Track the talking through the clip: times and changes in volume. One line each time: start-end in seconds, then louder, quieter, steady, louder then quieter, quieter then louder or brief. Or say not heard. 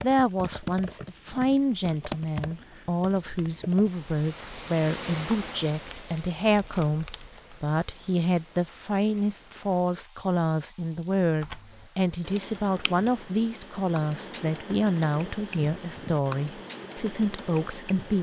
0.0-18.1 steady.